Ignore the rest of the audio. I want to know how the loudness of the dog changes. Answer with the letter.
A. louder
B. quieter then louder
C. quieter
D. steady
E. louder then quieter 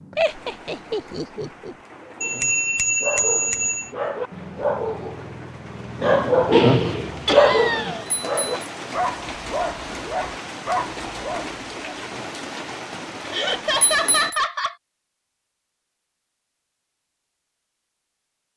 E.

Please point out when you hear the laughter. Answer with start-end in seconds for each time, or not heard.
0.1-1.8, 7.2-8.1, 13.3-14.8.